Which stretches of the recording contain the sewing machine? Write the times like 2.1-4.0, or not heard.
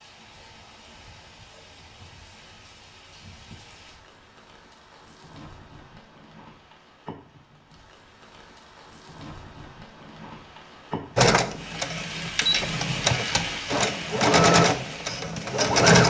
11.2-16.0.